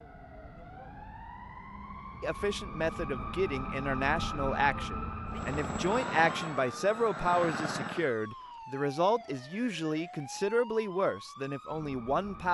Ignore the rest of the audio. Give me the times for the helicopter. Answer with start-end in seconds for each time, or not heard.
5.2-8.1.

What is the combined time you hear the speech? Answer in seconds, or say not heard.
10 s.